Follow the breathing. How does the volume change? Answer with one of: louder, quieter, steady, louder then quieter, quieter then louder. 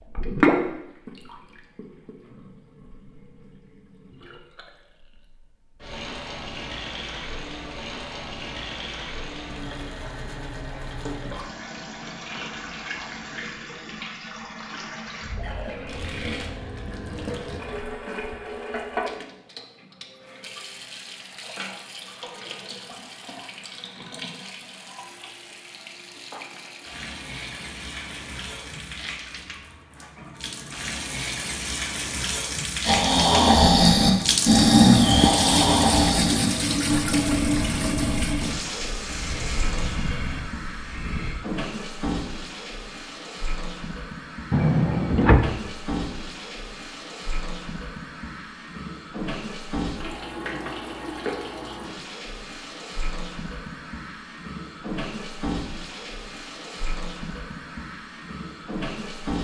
quieter.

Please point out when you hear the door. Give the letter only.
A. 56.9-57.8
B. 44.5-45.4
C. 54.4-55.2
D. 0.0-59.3
B.